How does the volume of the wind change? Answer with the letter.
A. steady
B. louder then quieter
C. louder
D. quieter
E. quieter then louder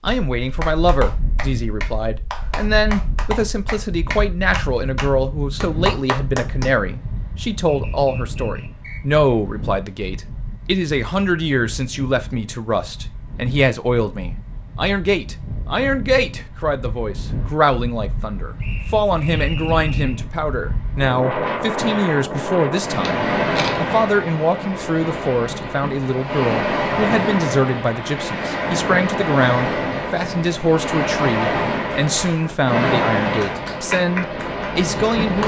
C.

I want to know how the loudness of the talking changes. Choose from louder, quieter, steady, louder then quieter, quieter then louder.
steady.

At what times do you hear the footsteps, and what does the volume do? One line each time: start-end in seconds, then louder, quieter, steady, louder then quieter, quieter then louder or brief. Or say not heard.
not heard.